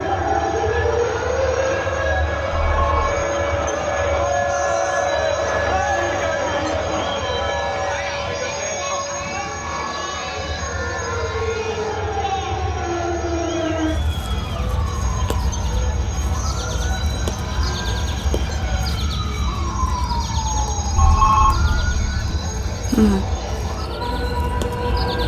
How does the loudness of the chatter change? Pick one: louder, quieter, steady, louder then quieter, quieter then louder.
quieter.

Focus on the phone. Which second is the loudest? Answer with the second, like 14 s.
21 s.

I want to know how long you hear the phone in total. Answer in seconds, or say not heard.
2 s.